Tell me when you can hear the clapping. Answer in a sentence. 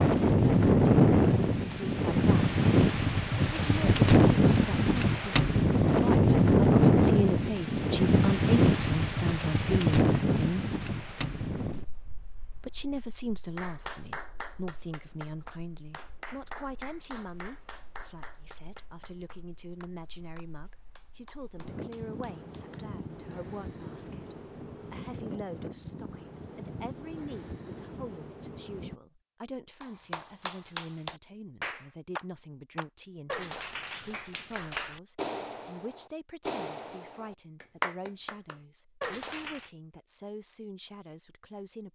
The clapping can be heard from 13.6 to 23.4 s and from 29.8 to 39.7 s.